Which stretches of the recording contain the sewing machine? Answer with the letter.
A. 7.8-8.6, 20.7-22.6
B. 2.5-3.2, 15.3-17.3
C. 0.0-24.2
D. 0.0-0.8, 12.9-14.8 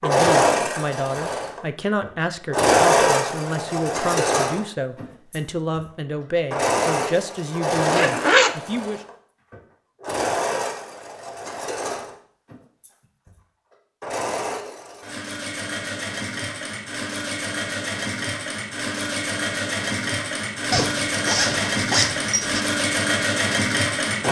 C.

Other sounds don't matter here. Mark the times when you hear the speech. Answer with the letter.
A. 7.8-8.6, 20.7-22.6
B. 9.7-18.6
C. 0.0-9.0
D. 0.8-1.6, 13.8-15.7
C.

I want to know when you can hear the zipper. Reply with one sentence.
You can hear the zipper from 7.8 to 8.6 s and from 20.7 to 22.6 s.